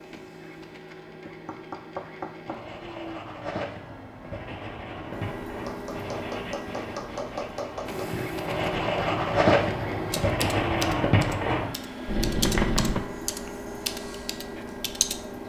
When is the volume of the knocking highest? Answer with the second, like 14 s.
13 s.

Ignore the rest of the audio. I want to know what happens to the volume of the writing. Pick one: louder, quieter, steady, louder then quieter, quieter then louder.
louder.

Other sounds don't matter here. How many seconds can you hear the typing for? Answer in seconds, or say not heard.
5 s.